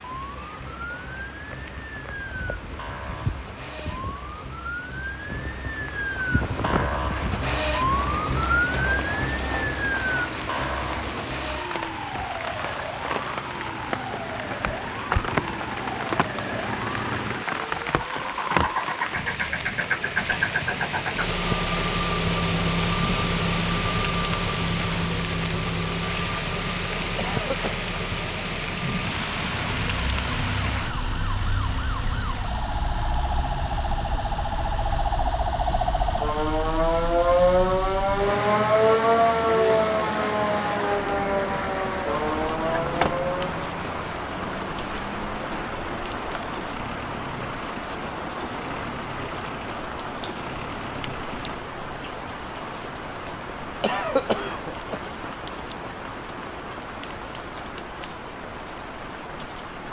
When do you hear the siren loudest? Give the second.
39 s.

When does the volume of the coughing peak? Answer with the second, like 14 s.
54 s.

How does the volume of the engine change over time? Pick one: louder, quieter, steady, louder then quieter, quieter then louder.
louder then quieter.